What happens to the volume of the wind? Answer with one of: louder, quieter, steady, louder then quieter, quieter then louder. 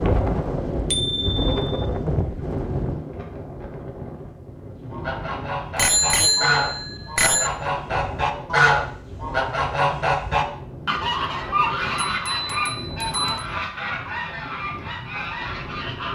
quieter.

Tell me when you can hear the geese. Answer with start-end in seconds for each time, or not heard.
4.9-16.1.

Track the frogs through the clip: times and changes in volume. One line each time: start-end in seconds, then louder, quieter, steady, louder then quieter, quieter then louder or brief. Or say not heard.
not heard.